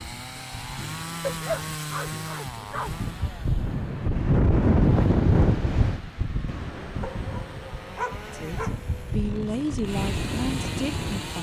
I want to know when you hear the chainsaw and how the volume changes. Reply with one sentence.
The chainsaw can be heard from 0.0 to 11.3 s, getting quieter then louder.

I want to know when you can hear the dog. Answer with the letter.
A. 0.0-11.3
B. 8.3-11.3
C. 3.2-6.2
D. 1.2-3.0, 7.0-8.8
D.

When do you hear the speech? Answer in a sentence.
The speech can be heard from 8.3 to 11.3 s.